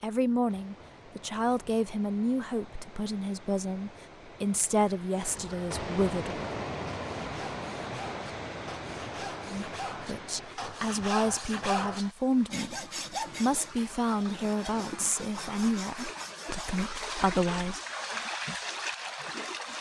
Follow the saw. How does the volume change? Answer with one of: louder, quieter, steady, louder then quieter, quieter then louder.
louder then quieter.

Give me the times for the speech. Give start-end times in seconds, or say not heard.
0.0-6.5, 9.4-17.8.